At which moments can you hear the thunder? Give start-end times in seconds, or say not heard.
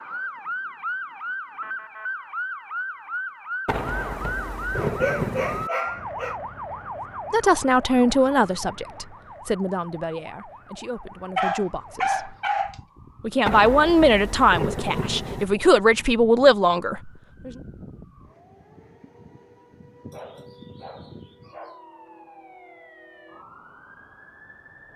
3.6-5.7, 13.4-15.4.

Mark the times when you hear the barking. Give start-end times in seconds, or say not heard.
4.8-6.3, 11.3-12.8, 20.1-21.9.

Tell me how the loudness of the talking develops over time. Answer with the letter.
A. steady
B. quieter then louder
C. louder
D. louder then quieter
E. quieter
B.